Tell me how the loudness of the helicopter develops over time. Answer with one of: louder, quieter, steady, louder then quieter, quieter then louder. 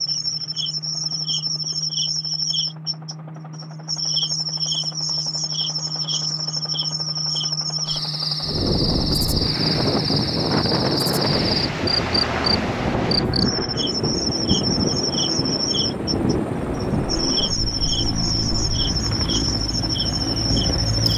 louder.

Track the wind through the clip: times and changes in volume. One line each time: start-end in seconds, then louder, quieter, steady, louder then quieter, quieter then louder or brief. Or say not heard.
8.4-20.9 quieter.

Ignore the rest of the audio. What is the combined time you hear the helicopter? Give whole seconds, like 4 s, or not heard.
21 s.